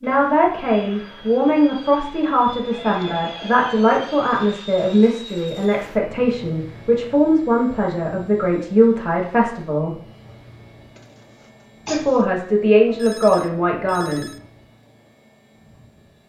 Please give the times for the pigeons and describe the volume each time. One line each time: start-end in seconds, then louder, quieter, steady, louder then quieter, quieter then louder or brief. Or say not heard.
not heard.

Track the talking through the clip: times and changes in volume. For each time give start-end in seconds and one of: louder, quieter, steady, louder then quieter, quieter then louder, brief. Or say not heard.
0.0-9.9 steady
11.8-14.2 brief.